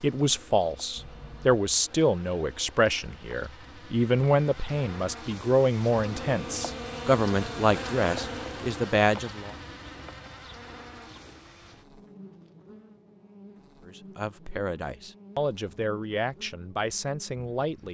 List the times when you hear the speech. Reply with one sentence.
The speech can be heard from 0.0 to 9.6 s and from 13.8 to 17.9 s.